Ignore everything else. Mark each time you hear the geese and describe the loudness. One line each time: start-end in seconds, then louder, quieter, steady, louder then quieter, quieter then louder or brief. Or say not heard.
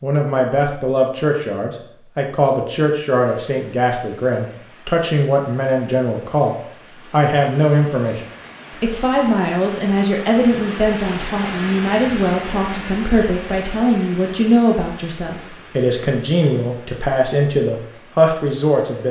not heard.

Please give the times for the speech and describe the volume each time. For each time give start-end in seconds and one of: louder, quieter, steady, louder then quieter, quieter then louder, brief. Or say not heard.
0.0-19.0 steady.